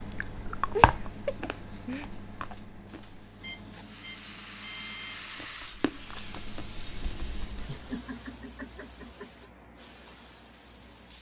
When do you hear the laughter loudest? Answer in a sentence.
The volume of the laughter peaks at 1 second.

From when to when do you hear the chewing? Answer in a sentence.
The chewing can be heard from 0.0 to 3.2 s and from 5.3 to 7.8 s.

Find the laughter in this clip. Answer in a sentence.
The laughter can be heard from 0.8 to 2.1 s and from 7.7 to 9.5 s.